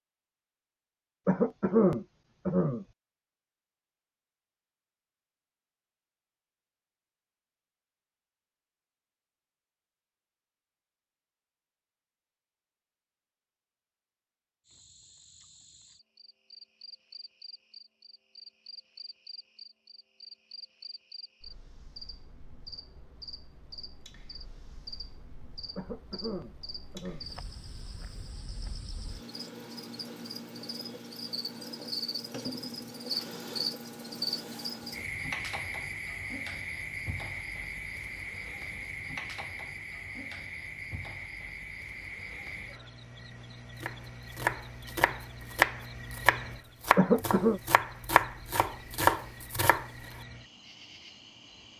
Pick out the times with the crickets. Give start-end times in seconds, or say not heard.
14.7-51.7.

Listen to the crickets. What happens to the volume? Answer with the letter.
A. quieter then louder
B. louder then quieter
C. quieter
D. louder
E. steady
B.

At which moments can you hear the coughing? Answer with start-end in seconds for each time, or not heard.
1.2-2.9, 25.8-27.2, 47.0-47.6.